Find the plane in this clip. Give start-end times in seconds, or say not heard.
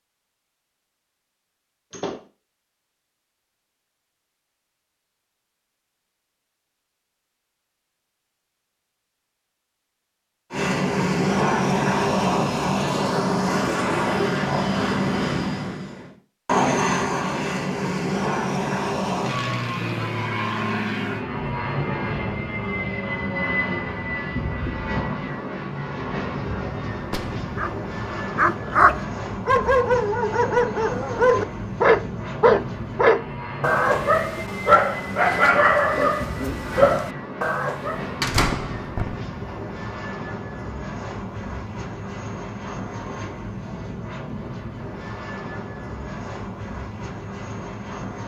10.5-48.2.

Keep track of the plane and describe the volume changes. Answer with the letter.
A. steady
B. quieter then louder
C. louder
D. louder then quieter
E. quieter
E.